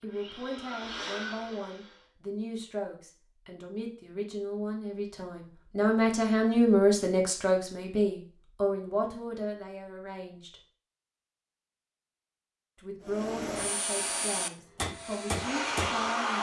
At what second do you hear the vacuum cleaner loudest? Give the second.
16 s.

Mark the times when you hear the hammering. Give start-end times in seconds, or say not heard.
14.8-16.1.